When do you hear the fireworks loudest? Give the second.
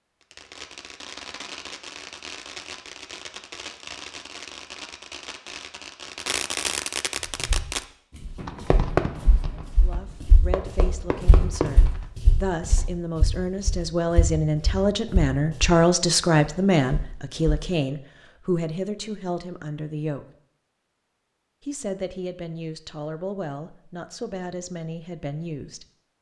9 s.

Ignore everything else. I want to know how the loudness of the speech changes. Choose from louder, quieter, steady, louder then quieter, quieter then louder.
louder then quieter.